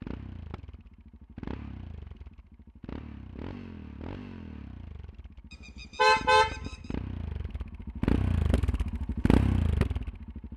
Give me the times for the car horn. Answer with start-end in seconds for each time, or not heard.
5.8-6.8.